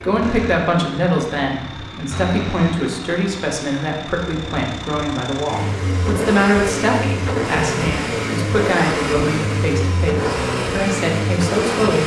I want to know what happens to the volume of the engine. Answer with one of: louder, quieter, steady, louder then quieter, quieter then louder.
louder.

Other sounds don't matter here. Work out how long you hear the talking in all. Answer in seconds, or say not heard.
12 s.